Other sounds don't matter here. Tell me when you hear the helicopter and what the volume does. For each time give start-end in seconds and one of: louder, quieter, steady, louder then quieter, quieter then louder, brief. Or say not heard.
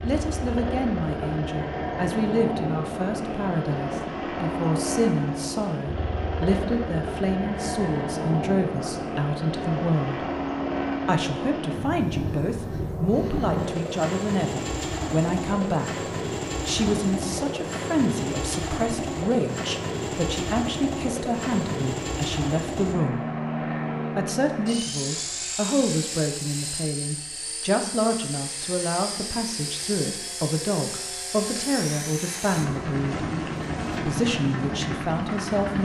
0.0-35.8 steady.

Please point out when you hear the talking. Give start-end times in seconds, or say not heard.
0.0-10.2, 11.1-15.9, 16.6-23.2, 24.1-33.3, 34.0-35.8.